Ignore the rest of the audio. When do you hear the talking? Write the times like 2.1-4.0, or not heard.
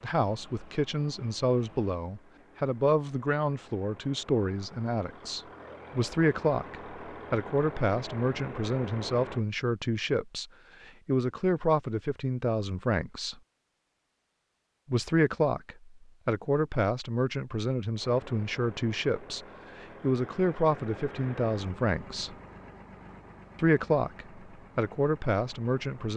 0.0-13.3, 14.9-22.3, 23.6-26.1.